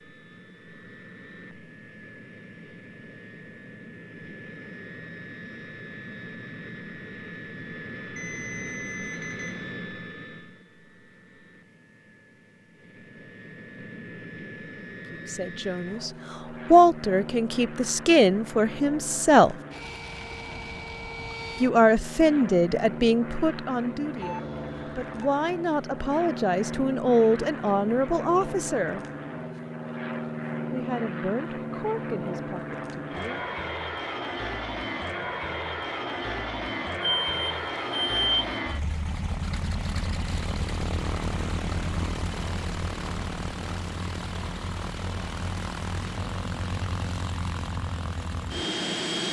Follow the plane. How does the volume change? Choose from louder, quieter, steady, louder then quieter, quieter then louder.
louder.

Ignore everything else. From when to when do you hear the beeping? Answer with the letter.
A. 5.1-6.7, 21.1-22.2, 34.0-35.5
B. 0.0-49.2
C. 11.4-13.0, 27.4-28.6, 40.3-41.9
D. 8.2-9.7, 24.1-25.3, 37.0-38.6
D.